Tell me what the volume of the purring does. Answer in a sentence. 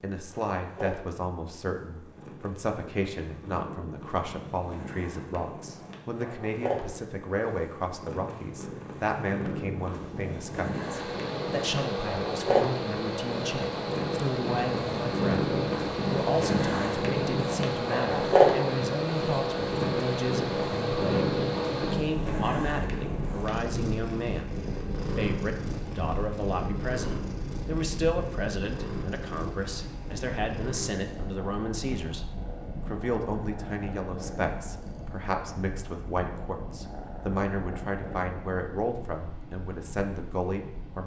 The loudness of the purring goes up, then down.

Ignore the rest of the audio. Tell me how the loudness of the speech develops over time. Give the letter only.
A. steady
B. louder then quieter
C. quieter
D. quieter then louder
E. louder
A.